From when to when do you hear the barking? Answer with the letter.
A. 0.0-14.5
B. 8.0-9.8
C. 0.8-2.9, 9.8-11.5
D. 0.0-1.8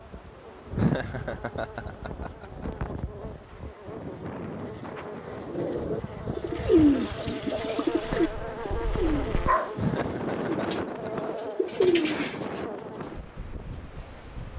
B.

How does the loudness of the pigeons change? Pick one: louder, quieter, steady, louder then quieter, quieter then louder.
quieter then louder.